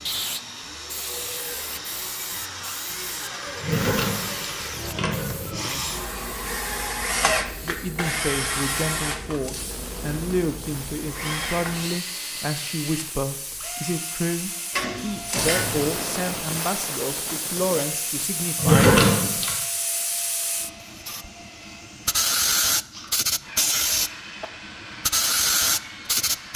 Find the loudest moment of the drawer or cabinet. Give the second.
19 s.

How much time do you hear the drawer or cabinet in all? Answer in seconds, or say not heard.
4 s.